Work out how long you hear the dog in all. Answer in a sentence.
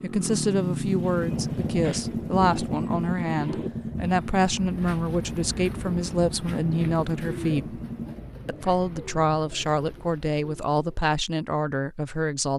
The dog can't be heard in this clip.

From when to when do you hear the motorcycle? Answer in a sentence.
The motorcycle can be heard from 0.0 to 8.2 s.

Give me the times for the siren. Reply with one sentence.
You can't hear the siren here.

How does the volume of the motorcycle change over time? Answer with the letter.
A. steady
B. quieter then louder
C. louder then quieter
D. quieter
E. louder
D.